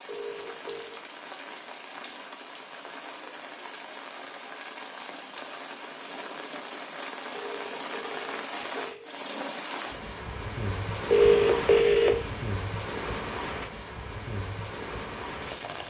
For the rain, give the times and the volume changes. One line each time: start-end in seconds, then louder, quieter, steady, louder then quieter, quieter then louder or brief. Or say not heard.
0.0-15.8 louder.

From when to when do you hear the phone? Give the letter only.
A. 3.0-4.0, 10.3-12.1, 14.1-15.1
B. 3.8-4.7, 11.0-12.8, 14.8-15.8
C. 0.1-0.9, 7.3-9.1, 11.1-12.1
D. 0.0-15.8
C.